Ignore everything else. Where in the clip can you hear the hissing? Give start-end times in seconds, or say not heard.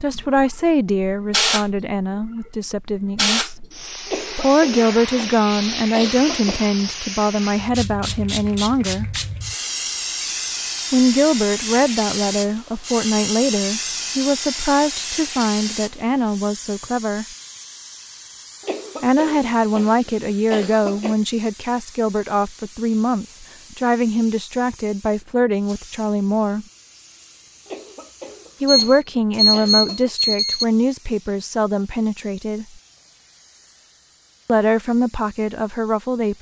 0.0-36.3.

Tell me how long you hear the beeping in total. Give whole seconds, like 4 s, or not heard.
2 s.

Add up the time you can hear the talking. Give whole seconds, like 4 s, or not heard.
28 s.